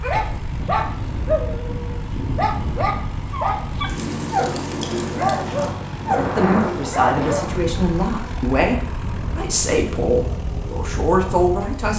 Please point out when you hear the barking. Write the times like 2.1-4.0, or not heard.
0.0-7.5.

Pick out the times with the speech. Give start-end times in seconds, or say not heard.
6.2-11.9.